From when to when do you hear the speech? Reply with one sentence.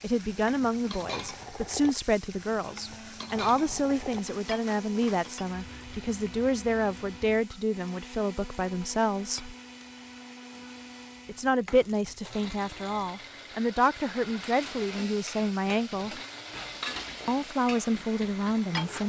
The speech can be heard from 0.0 to 9.6 s, from 11.2 to 16.2 s and from 17.2 to 19.0 s.